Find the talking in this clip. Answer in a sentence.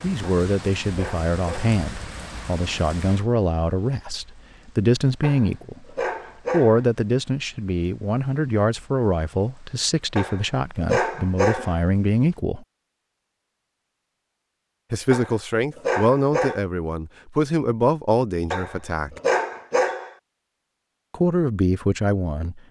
The talking can be heard from 0.0 to 5.8 s, from 6.5 to 12.7 s, from 14.9 to 19.2 s and from 21.1 to 22.6 s.